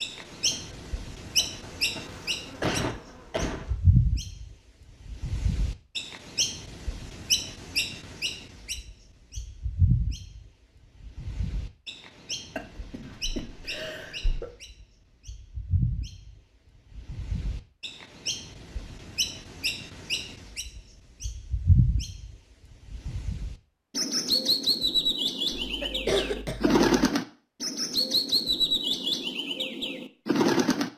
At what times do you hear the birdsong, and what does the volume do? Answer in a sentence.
The birdsong can be heard from 0.0 to 30.9 s, getting quieter then louder.